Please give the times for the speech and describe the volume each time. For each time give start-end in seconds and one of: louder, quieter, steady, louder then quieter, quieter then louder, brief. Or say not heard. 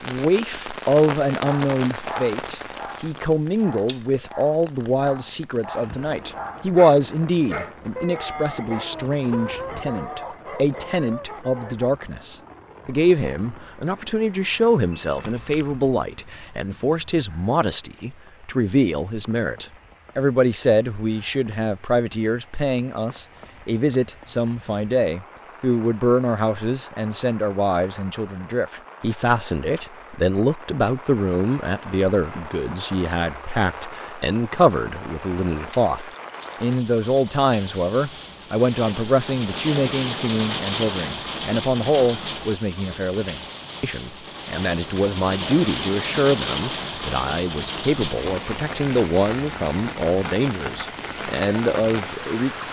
0.0-52.6 steady.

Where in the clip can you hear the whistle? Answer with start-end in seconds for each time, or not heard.
not heard.